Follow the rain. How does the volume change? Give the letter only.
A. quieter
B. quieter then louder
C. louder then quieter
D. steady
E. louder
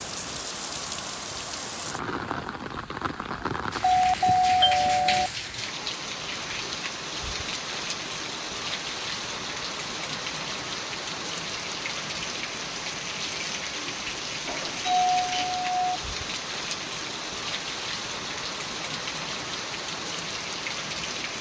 D.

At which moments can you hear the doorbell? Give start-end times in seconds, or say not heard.
3.8-5.3, 14.4-15.8.